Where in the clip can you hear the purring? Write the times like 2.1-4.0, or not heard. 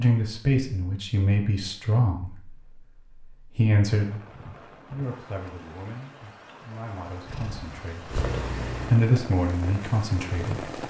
7.2-8.9.